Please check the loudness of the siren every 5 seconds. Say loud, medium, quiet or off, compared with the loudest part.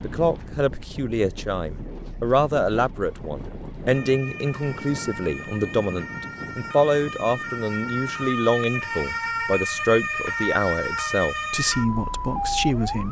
quiet, loud, loud.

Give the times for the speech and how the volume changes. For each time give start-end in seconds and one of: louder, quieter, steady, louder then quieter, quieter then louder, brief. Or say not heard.
0.0-13.0 steady.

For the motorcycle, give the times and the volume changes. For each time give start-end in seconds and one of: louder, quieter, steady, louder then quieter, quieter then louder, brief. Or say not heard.
not heard.